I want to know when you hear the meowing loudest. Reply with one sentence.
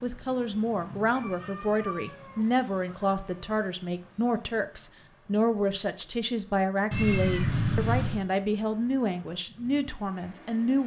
The volume of the meowing peaks at 8 seconds.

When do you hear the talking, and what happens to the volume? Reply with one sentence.
The talking can be heard from 0.0 to 10.8 s, at a steady volume.